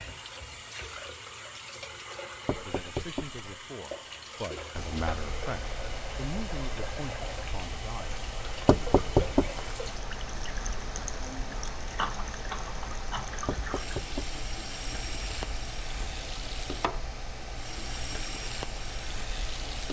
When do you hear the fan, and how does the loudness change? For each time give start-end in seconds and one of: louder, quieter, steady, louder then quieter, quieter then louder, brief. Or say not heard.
4.7-19.8 steady.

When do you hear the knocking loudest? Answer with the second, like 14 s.
9 s.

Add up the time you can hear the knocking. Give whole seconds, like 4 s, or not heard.
3 s.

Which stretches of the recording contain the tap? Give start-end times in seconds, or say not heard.
0.0-19.8.